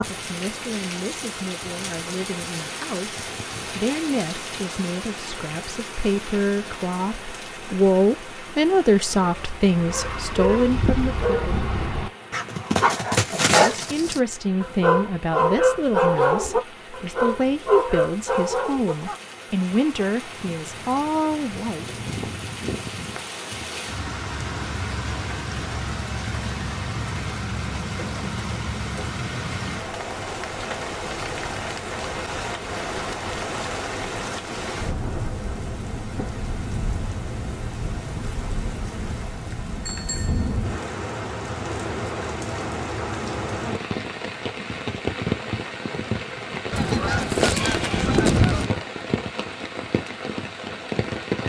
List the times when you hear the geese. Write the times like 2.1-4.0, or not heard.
46.7-48.7.